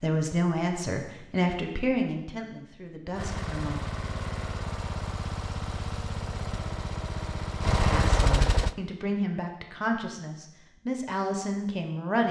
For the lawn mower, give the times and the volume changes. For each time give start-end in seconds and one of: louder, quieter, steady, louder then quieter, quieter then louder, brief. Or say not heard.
3.1-8.8 louder.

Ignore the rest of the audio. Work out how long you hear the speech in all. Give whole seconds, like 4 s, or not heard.
8 s.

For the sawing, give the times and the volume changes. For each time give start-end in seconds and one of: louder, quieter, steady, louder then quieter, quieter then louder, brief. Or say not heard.
not heard.